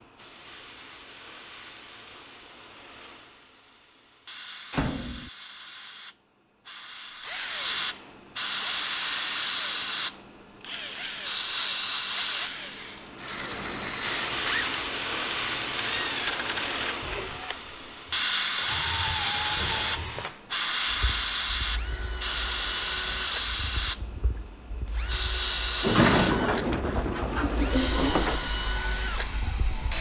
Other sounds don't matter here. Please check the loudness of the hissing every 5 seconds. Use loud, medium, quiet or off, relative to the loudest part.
quiet, loud, loud, loud, loud, loud.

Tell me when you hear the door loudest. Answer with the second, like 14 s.
26 s.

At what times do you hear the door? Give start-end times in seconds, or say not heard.
4.7-5.3, 25.8-28.4.